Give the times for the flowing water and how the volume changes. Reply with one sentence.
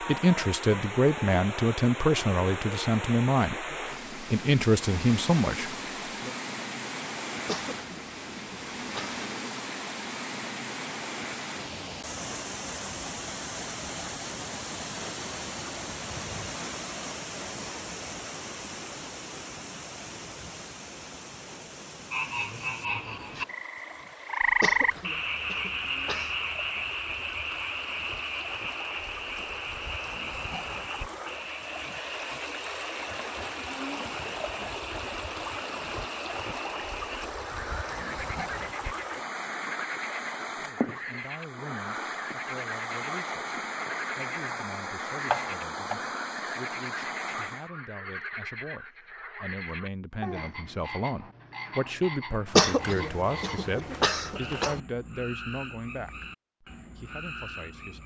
You can hear the flowing water from 0.0 to 47.7 s, getting quieter then louder.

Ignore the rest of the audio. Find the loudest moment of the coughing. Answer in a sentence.
The volume of the coughing peaks at 53 seconds.